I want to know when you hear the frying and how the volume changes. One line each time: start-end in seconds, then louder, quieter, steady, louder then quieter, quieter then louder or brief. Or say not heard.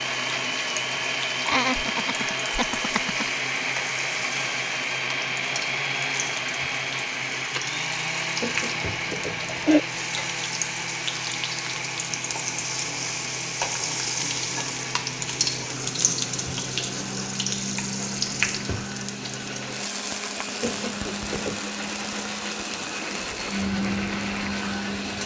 0.0-25.2 louder then quieter.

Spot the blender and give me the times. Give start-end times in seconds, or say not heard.
0.0-25.2.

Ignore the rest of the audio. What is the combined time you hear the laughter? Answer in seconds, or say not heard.
4 s.